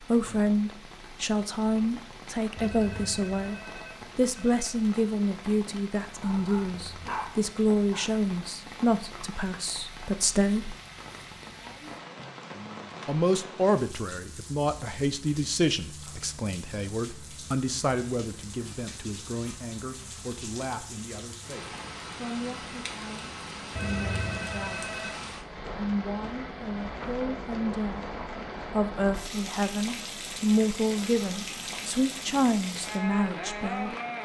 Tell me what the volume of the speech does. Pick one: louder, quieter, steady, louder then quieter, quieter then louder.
quieter then louder.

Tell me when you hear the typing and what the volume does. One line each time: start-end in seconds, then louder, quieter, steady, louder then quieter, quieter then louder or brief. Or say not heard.
not heard.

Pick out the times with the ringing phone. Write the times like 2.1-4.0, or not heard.
2.5-4.8, 23.8-25.1.